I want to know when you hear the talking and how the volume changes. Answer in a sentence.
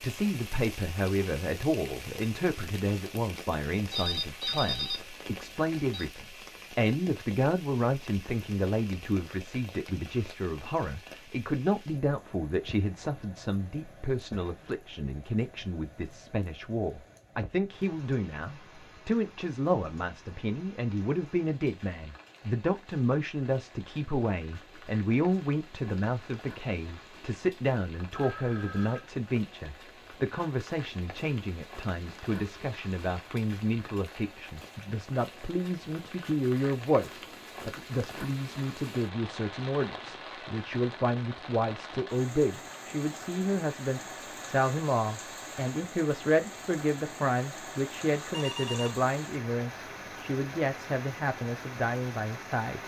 The talking can be heard from 0.0 to 52.8 s, at a steady volume.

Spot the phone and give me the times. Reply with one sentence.
You can hear the phone from 3.9 to 6.0 s, from 28.1 to 29.1 s and from 48.3 to 49.0 s.